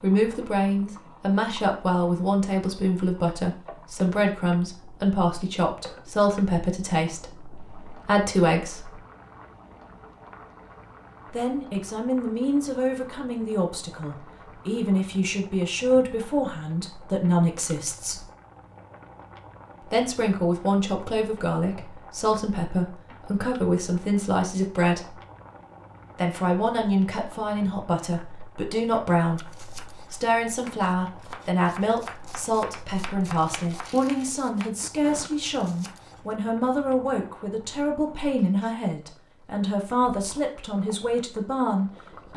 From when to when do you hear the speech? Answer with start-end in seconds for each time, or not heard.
0.0-9.0, 11.3-18.2, 19.9-25.1, 26.1-42.3.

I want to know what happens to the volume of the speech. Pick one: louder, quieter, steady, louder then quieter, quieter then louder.
steady.